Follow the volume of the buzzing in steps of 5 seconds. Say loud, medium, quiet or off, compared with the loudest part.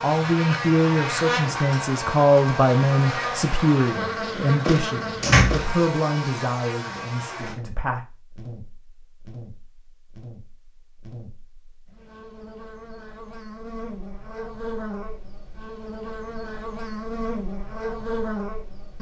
loud, medium, medium, medium.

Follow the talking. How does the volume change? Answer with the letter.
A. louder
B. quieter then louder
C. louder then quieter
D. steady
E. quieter
E.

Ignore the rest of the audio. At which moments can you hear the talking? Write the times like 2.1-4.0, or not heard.
0.0-8.1.